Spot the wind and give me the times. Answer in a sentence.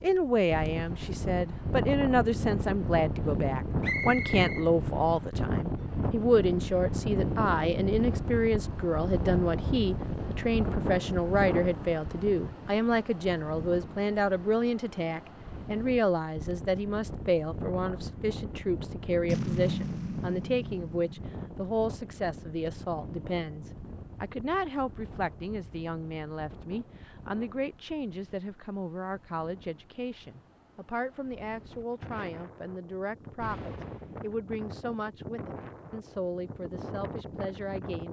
You can hear the wind from 0.0 to 38.0 s.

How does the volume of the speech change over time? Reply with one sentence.
The loudness of the speech goes down.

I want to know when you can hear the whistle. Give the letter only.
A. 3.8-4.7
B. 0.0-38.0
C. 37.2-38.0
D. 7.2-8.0
A.